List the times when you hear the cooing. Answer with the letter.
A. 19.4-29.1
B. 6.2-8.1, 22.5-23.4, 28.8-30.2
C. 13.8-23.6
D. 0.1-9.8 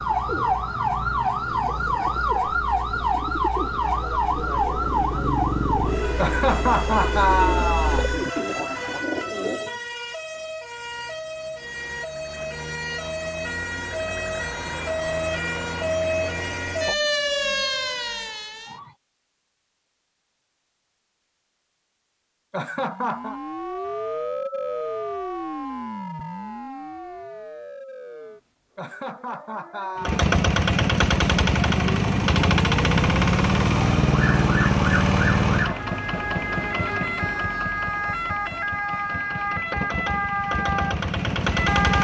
D.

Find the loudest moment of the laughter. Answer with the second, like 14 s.
7 s.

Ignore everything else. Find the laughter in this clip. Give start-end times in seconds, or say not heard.
6.2-8.1, 22.5-23.4, 28.8-30.2.